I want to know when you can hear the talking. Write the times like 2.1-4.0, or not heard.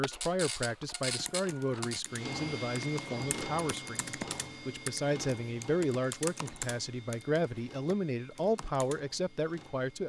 0.0-10.0.